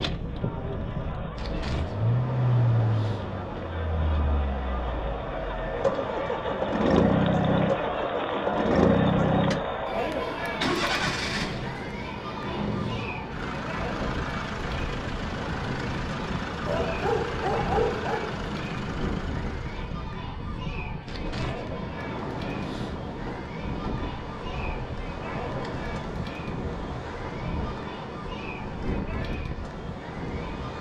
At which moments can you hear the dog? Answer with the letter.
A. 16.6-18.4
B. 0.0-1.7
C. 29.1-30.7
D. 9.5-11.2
A.